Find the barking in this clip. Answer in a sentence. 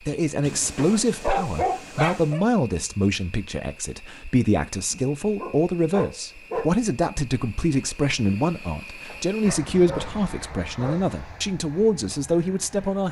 You can hear the barking from 0.4 to 2.4 s, from 4.9 to 6.7 s and from 9.1 to 11.1 s.